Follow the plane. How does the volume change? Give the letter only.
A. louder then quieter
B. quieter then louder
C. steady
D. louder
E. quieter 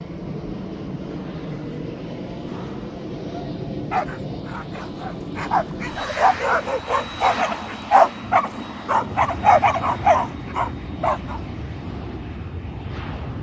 C.